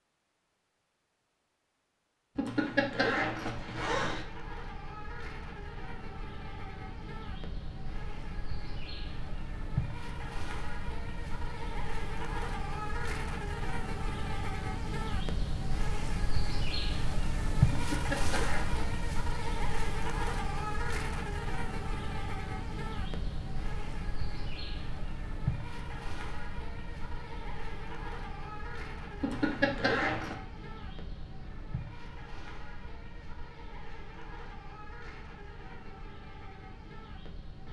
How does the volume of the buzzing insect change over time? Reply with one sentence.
The volume of the buzzing insect goes up, then down.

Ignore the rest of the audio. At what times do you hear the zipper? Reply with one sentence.
You can hear the zipper from 2.4 to 4.2 s, from 17.7 to 18.9 s and from 29.2 to 30.4 s.